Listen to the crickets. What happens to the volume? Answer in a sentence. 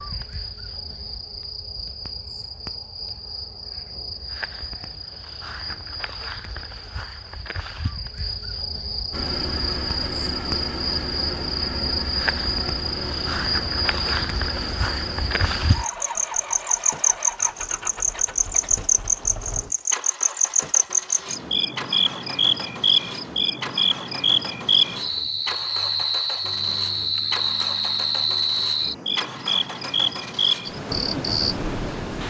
The volume of the crickets goes up.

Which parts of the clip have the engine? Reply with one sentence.
The engine can be heard from 9.1 to 32.2 s.